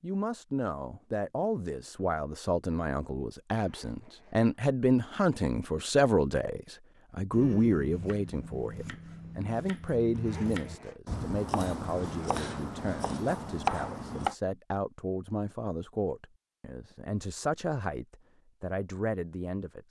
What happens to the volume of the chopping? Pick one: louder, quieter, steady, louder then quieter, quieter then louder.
louder.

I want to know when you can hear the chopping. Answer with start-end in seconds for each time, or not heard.
7.3-14.3.